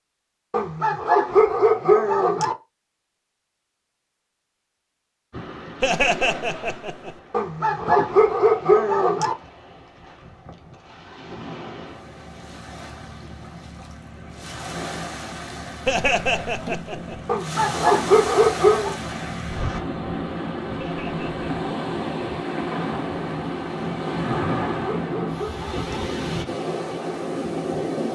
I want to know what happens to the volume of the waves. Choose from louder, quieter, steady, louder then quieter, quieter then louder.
louder.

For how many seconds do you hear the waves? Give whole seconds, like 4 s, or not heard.
23 s.